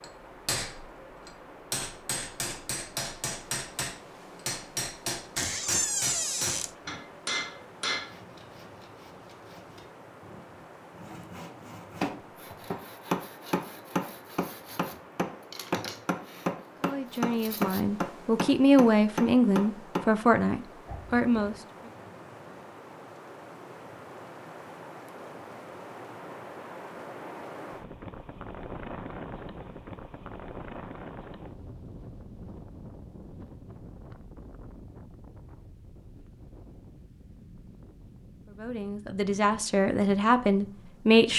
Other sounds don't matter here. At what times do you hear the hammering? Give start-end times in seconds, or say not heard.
0.0-8.1, 12.0-20.1.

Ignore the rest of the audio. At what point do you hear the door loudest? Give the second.
6 s.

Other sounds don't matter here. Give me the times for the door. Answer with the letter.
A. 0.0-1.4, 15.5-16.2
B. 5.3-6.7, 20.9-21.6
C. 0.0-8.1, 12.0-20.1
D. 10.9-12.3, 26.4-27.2
B.